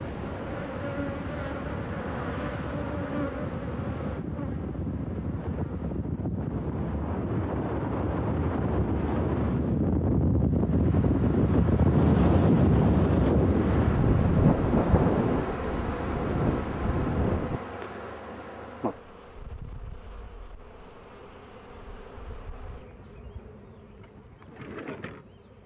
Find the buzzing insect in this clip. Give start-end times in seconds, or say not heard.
0.0-6.2, 10.7-25.6.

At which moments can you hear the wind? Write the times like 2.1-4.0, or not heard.
0.0-17.6.